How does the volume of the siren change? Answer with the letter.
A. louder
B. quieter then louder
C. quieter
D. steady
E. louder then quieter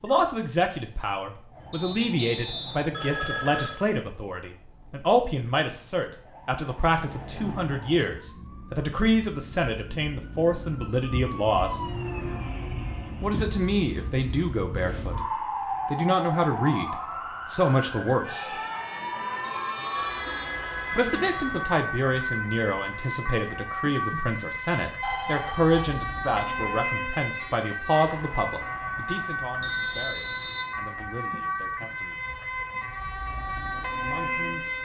A.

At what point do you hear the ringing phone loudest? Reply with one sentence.
The loudest moment of the ringing phone is at 3 seconds.